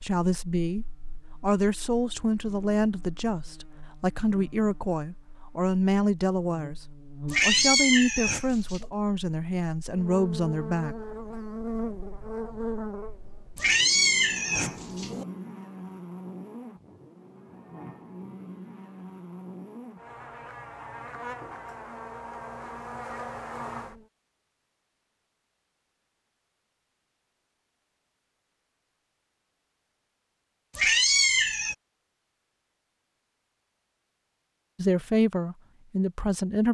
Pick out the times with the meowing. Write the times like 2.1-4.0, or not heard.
7.3-8.8, 13.6-15.2, 30.8-31.8.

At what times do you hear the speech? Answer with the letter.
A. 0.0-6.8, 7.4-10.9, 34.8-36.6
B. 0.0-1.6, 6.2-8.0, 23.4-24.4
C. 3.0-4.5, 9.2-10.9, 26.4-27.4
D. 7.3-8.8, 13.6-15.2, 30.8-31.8
A.